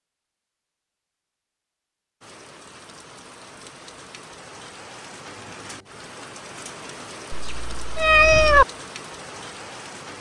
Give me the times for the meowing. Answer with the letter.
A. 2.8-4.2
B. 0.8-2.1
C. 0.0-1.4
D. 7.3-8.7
D.